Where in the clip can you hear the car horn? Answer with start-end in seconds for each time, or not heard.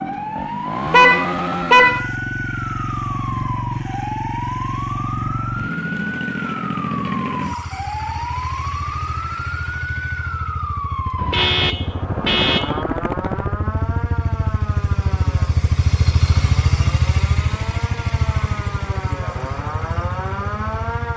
0.9-2.1, 11.2-12.8.